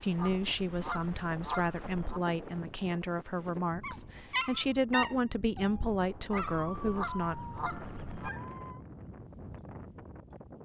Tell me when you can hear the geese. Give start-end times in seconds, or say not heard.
0.1-2.2, 6.3-8.3.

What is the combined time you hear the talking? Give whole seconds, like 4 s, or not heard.
7 s.